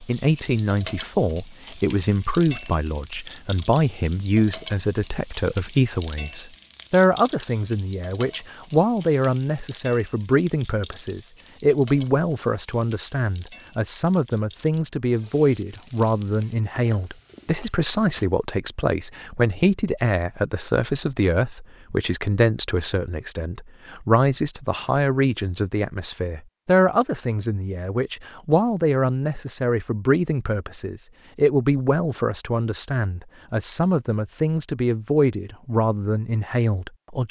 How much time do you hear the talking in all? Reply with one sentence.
You can hear the talking for 37 seconds altogether.